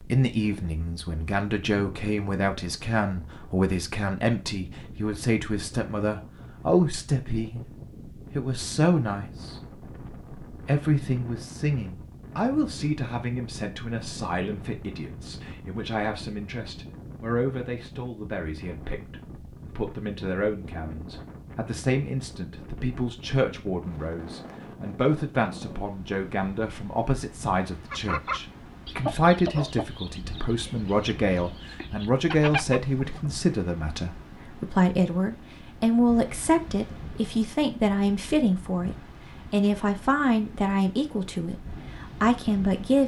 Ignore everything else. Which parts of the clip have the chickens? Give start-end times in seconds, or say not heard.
27.9-33.3.